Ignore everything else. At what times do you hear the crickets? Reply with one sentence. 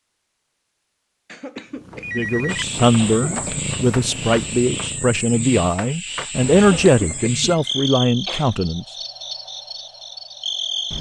You can hear the crickets from 2.5 to 10.9 s.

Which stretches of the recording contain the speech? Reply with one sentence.
The speech can be heard from 2.1 to 8.8 s.